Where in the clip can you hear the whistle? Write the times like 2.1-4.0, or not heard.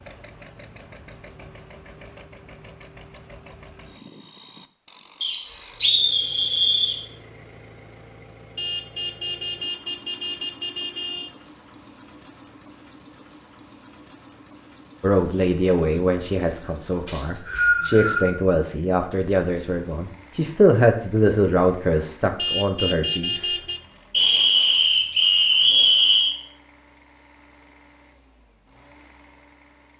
5.2-7.0, 17.1-18.3, 24.1-26.4.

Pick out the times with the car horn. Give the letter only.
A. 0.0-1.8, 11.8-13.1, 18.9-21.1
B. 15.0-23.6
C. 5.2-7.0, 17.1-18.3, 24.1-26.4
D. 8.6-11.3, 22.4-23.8
D.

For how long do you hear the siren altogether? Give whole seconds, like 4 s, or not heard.
not heard.